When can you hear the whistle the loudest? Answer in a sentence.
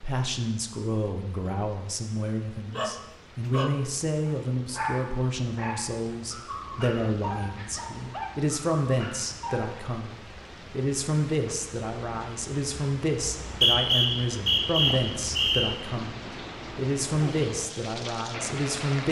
The volume of the whistle peaks at 14 seconds.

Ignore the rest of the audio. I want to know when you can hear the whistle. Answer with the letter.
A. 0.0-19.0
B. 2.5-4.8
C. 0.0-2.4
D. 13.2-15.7
D.